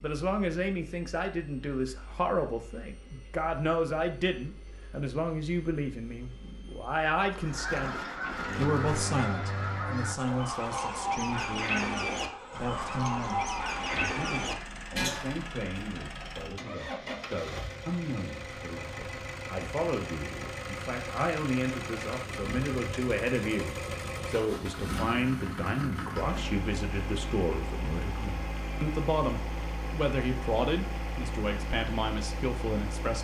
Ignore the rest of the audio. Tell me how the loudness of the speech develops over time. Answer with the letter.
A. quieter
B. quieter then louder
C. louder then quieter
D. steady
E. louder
B.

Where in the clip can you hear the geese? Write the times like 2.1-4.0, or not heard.
7.3-15.5.